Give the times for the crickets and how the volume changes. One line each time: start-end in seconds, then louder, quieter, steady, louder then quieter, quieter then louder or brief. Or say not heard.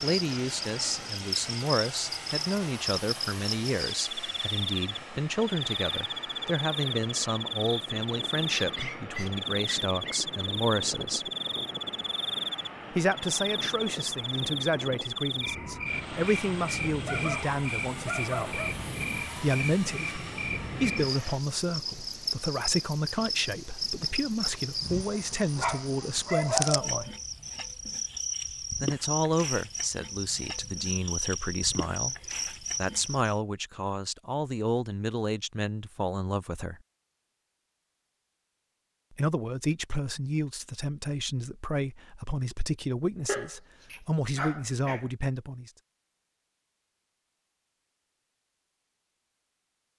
0.0-33.4 steady.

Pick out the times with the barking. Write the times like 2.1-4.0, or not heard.
8.6-10.2, 17.1-18.8, 25.1-27.1, 43.2-45.0.